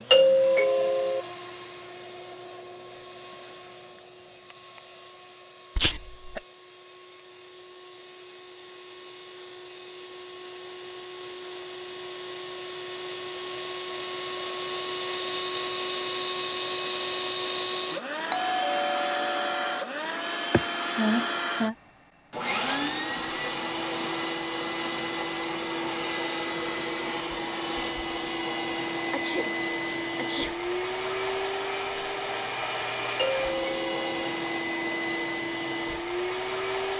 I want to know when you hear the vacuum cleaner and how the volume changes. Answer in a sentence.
You can hear the vacuum cleaner from 0.0 to 36.9 s, getting louder.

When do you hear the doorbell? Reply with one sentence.
You can hear the doorbell from 0.1 to 1.2 s, from 18.3 to 19.9 s and from 33.1 to 34.3 s.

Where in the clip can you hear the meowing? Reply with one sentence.
You can't hear the meowing here.